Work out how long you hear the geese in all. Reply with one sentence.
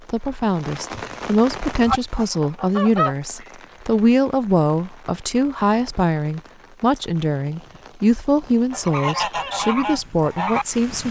You can hear the geese for 4 seconds altogether.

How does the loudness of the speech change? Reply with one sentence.
The loudness of the speech stays about the same.